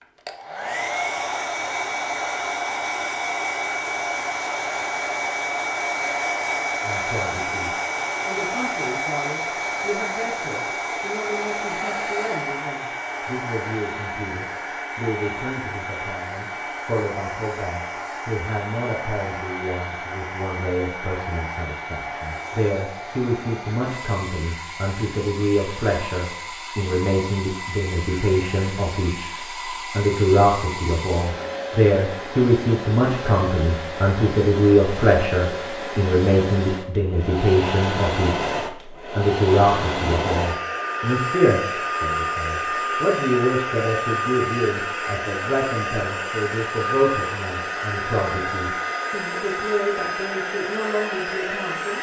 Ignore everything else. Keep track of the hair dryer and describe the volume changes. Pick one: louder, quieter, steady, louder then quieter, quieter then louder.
quieter then louder.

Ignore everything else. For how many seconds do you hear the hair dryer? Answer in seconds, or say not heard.
52 s.